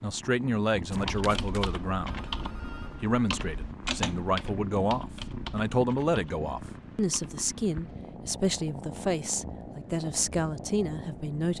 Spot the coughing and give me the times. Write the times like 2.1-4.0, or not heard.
not heard.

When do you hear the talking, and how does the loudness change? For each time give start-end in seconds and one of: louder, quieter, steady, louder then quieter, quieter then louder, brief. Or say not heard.
0.0-2.2 brief
3.0-11.5 steady.